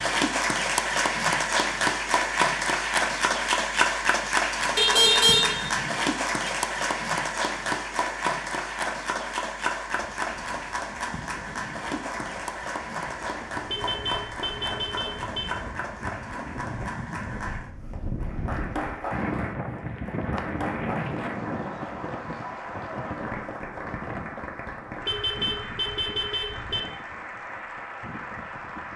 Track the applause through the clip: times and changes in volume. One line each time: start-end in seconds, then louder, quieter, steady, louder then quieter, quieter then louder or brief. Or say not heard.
0.0-28.9 quieter.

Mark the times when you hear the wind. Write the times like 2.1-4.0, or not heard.
10.2-28.9.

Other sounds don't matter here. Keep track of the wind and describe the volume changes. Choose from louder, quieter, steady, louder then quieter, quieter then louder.
louder then quieter.